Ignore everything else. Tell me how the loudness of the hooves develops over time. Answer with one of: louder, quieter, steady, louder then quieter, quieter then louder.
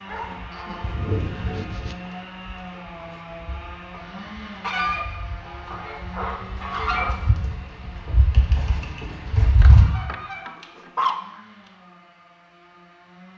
louder.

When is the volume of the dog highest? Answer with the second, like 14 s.
11 s.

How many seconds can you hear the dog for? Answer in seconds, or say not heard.
5 s.